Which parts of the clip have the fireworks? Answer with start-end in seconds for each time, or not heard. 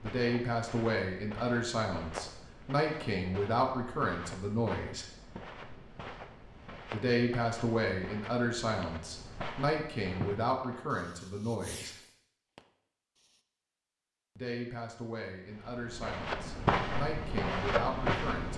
10.2-13.4.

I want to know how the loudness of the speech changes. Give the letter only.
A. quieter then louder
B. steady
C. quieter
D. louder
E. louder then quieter
C.